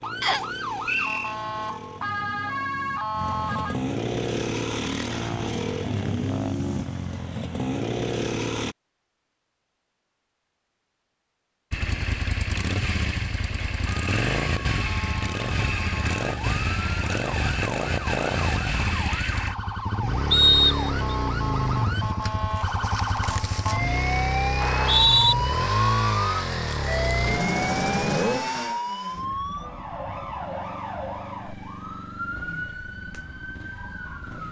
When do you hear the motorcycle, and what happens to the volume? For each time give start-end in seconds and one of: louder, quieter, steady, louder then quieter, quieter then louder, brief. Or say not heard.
0.0-8.8 louder
11.7-34.4 quieter.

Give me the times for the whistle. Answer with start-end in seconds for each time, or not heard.
0.2-1.4, 20.3-20.9, 24.6-25.4.